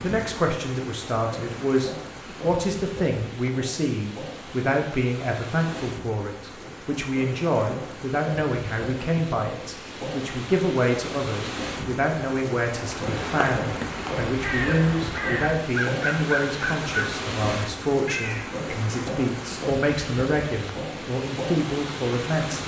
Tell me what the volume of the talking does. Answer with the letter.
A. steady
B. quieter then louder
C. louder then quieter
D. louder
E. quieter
A.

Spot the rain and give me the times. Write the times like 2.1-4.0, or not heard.
0.0-22.6.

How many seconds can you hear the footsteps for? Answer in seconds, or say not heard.
not heard.